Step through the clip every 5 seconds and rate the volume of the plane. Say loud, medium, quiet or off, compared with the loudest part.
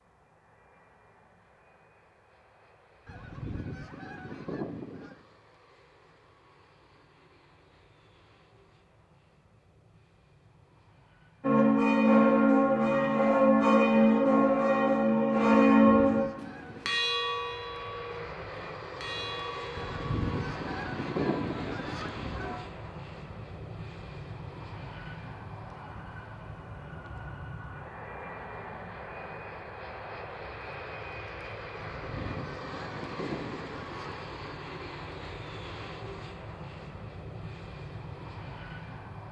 quiet, quiet, quiet, loud, loud, loud, loud, loud.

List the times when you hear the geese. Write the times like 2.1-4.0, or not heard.
3.0-5.2, 15.7-17.0, 19.8-22.6, 31.8-34.3.